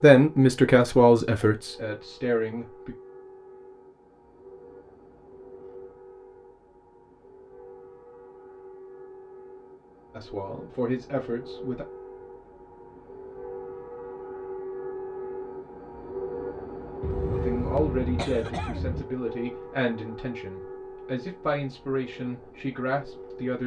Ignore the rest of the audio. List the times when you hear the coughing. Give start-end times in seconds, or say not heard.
17.0-19.1.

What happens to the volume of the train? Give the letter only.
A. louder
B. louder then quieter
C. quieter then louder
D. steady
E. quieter
B.